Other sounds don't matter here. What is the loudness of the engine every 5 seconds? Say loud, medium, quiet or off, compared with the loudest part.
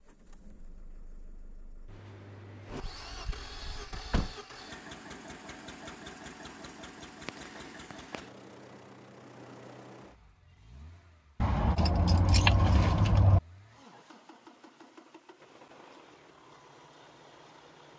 loud, loud, medium, medium.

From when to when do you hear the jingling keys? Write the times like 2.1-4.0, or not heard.
2.6-4.3, 11.4-13.4.